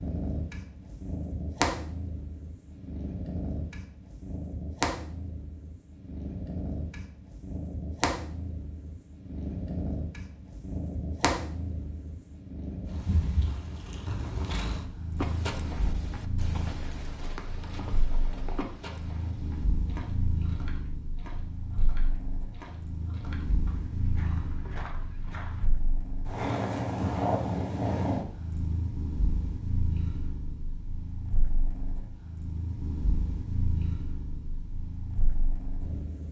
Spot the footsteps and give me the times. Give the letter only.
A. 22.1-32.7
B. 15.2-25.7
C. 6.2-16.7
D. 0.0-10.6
B.